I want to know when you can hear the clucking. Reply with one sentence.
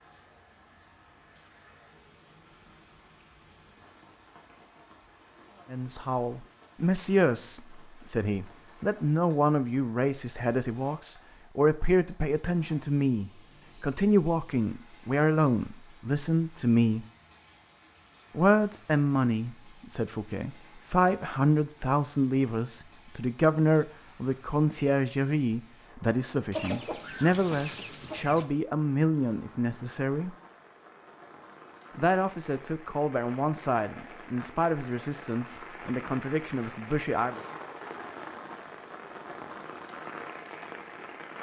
You can hear the clucking from 26.5 to 28.4 s.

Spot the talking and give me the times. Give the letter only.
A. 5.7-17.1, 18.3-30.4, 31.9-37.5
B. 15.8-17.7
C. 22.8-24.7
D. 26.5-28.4
A.